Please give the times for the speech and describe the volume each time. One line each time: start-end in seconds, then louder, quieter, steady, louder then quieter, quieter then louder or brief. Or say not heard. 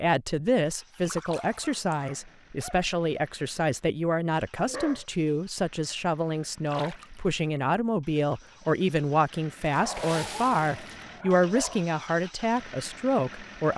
0.0-13.7 steady.